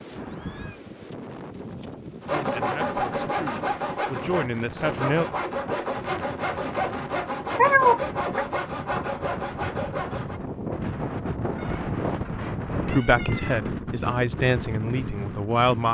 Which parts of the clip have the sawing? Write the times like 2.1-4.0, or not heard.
2.2-10.4.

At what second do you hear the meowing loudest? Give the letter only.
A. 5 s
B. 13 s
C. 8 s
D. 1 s
C.